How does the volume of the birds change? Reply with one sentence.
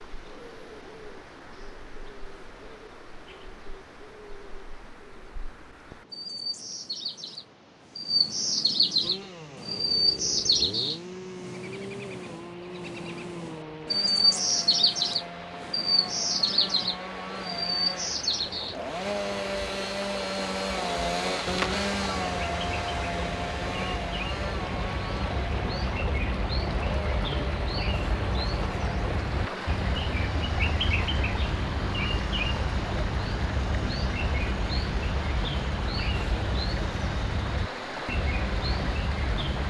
The loudness of the birds goes up, then down.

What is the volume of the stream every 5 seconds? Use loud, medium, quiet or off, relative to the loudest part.
quiet, quiet, quiet, medium, loud, loud, loud, loud.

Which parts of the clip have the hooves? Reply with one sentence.
You can't hear the hooves here.